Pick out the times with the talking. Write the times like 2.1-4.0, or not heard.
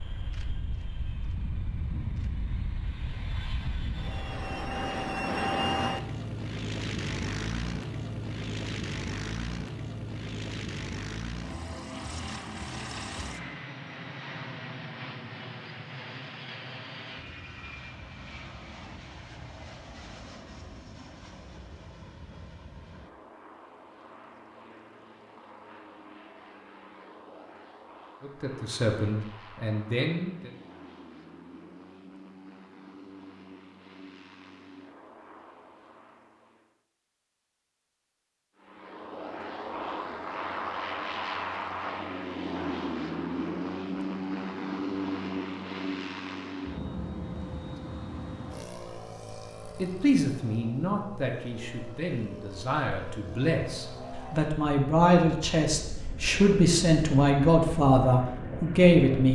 28.2-30.5, 49.8-59.3.